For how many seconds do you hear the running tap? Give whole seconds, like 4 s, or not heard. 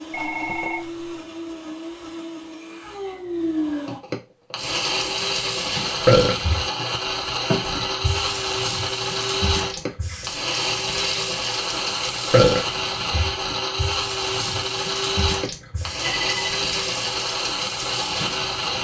14 s.